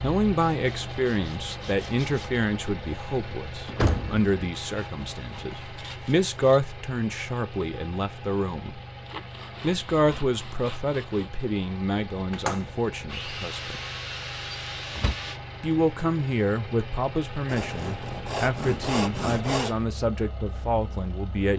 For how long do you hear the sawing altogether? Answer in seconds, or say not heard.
11 s.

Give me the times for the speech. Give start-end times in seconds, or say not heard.
0.0-8.8, 9.6-13.8, 15.6-21.5.